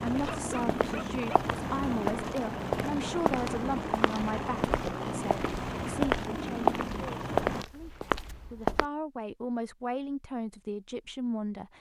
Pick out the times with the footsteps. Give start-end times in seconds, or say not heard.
0.1-8.8.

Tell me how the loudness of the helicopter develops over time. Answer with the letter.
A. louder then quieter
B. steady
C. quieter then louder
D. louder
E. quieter
B.